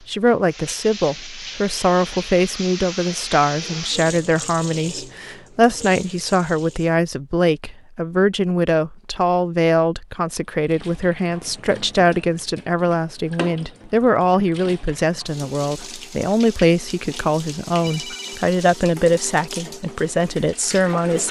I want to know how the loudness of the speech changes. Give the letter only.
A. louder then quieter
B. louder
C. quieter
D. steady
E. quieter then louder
D.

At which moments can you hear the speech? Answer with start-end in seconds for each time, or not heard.
0.1-21.2.